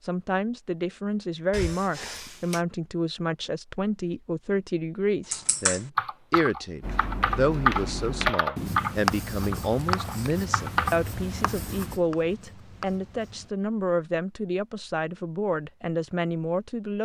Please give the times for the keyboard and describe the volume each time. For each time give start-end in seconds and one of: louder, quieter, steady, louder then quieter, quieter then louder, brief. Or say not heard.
5.3-10.9 louder then quieter.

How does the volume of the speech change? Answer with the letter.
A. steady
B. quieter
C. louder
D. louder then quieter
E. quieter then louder
A.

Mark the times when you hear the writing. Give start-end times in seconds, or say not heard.
6.8-13.5.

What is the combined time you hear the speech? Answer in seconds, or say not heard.
17 s.